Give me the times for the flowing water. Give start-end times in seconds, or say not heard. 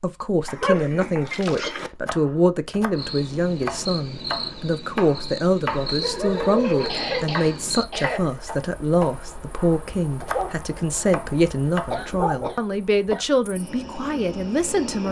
not heard.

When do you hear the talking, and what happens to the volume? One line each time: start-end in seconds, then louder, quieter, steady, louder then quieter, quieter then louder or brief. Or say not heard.
0.0-15.0 steady.